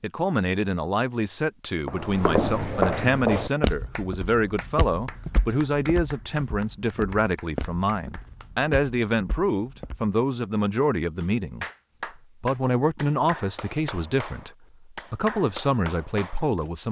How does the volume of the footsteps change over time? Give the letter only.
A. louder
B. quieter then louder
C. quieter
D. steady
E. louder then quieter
C.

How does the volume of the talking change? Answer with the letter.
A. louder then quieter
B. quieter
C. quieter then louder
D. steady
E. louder
D.